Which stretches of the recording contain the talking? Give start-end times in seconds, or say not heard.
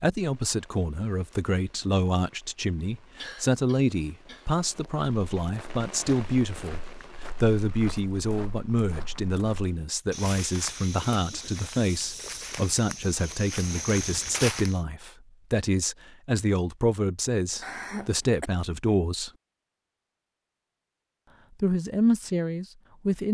0.0-6.8, 7.4-19.3, 21.6-23.2.